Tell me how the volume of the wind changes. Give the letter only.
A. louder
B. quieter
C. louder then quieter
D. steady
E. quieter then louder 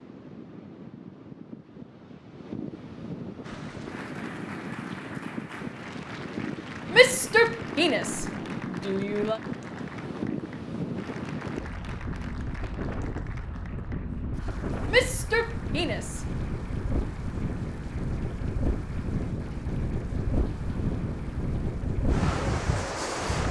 A.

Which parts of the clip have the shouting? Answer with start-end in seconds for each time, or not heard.
6.9-9.4, 14.8-16.2.